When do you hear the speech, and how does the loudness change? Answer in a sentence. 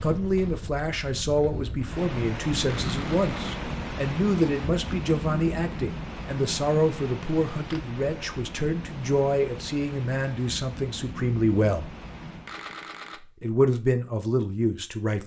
The speech can be heard from 0.0 to 11.9 s, at a steady volume; and briefly from 13.2 to 15.2 s.